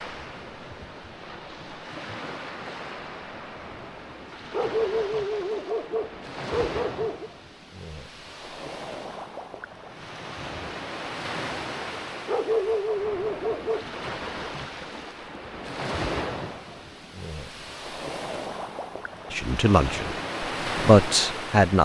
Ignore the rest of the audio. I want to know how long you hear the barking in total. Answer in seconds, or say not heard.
5 s.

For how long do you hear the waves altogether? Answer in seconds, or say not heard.
22 s.